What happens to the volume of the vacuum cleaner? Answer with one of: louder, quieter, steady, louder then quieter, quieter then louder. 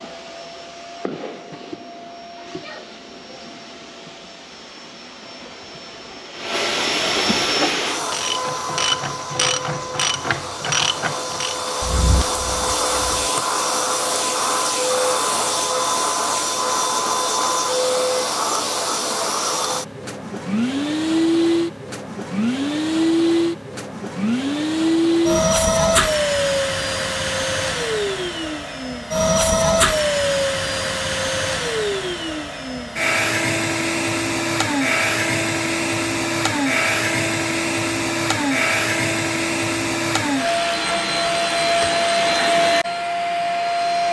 louder.